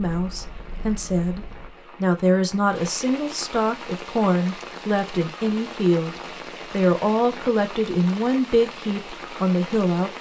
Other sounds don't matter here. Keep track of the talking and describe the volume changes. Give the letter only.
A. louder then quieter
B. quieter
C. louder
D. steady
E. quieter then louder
D.